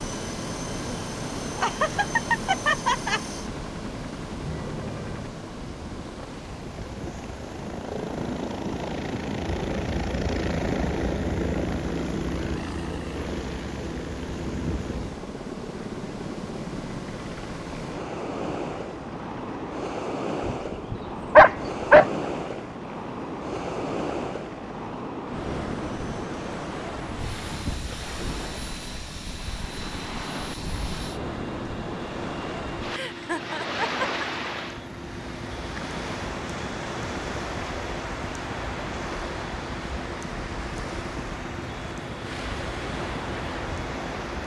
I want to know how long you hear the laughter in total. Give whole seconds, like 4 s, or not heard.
3 s.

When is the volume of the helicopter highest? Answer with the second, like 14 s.
11 s.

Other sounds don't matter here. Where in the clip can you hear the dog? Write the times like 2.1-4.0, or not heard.
20.4-22.1.